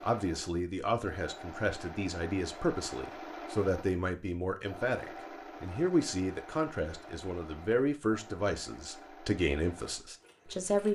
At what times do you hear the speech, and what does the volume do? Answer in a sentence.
The speech can be heard from 0.0 to 10.9 s, at a steady volume.